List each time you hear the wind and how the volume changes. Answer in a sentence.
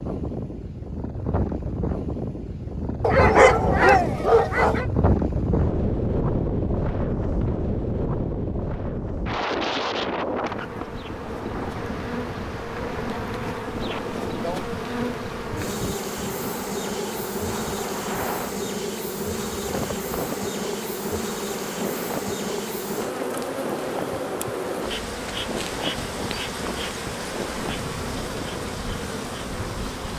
The wind can be heard from 0.0 to 30.1 s, getting quieter.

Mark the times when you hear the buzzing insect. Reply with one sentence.
You can hear the buzzing insect from 10.4 to 30.1 s.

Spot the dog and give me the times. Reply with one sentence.
You can hear the dog from 3.0 to 4.8 s.